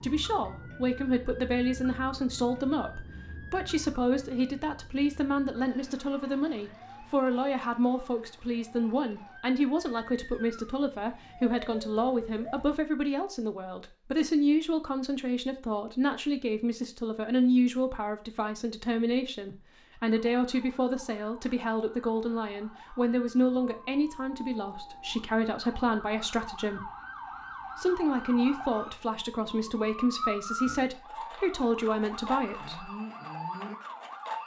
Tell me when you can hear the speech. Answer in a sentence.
The speech can be heard from 0.0 to 26.9 s and from 27.8 to 32.9 s.